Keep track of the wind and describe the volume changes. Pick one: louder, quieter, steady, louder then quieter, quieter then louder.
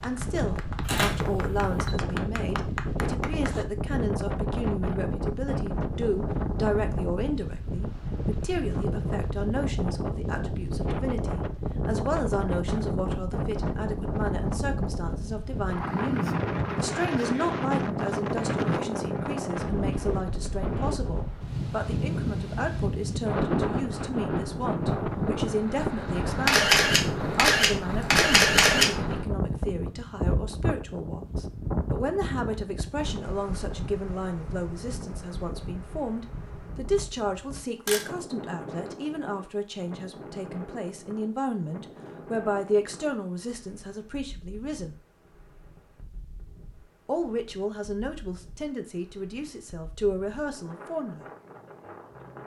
quieter.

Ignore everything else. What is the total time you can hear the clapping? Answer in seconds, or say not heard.
4 s.